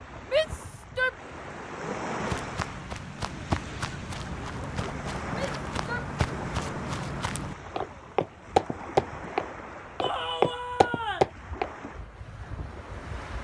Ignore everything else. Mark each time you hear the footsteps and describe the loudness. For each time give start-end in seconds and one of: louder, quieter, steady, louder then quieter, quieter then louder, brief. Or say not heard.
2.1-11.7 louder.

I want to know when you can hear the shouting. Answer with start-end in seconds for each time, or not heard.
0.3-1.1, 5.3-6.1, 10.0-11.3.